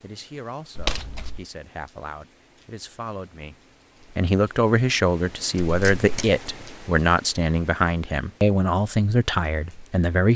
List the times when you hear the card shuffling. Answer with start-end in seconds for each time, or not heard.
0.8-1.4, 5.7-6.3.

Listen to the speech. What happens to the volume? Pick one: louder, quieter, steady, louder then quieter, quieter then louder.
louder.